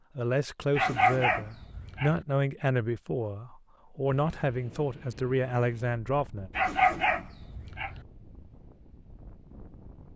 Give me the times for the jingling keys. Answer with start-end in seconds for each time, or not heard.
not heard.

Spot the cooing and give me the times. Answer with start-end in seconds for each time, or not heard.
not heard.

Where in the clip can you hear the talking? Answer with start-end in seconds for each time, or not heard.
0.1-6.5.